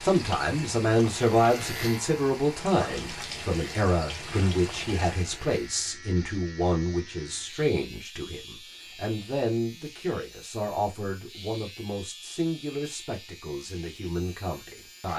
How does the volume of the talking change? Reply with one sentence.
The loudness of the talking goes down.